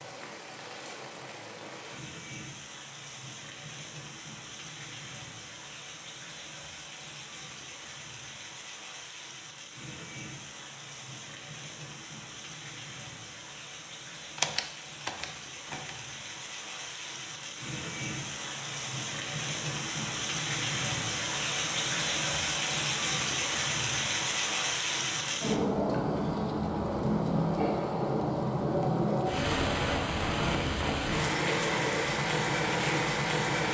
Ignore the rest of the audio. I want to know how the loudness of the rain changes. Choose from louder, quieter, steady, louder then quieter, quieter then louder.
louder.